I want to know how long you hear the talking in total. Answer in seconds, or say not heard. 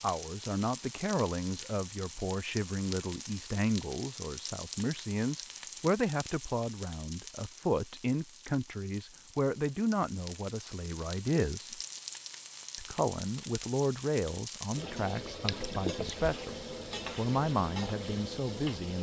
17 s.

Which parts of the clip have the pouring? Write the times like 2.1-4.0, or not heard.
15.4-16.3.